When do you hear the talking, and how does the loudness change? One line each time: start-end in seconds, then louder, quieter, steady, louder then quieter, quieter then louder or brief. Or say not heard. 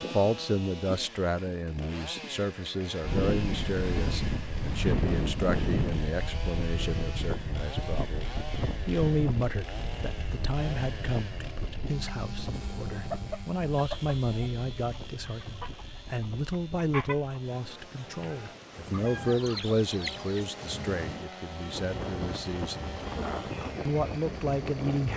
0.0-25.1 steady.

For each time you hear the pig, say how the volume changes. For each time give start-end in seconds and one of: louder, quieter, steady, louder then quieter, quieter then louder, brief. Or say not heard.
not heard.